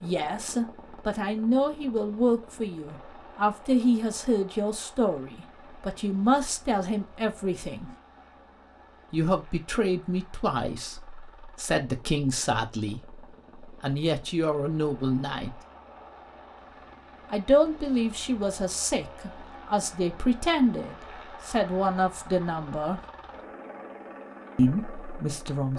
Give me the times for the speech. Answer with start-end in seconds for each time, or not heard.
0.0-7.9, 9.1-15.6, 17.3-23.0, 24.6-25.7.